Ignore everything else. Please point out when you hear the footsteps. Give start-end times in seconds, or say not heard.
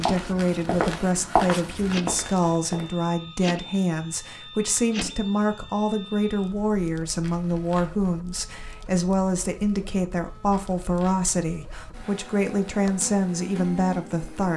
0.0-2.9.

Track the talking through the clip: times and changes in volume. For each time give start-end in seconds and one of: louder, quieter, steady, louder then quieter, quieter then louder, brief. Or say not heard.
0.0-14.5 steady.